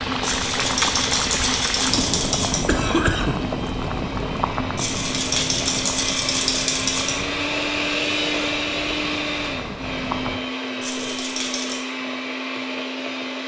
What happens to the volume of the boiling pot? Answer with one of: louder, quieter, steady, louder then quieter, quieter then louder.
quieter.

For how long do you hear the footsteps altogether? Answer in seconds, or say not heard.
not heard.